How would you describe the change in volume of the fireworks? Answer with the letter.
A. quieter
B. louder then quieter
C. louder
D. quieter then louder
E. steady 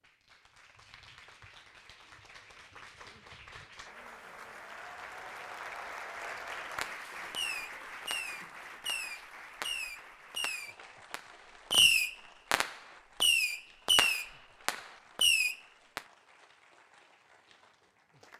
C.